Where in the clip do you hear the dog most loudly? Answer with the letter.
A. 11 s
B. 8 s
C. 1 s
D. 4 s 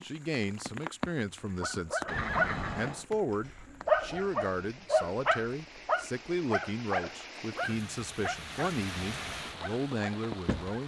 D.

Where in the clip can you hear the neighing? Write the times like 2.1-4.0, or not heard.
2.0-3.0.